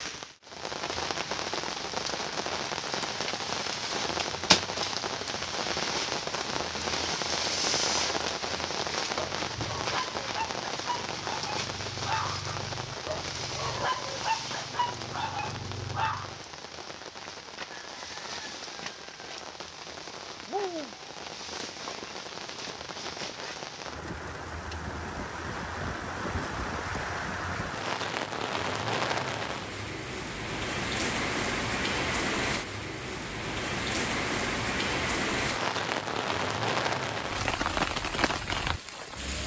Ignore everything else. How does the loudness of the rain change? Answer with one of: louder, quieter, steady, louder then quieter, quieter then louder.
quieter then louder.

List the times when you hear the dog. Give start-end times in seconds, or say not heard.
9.2-16.4.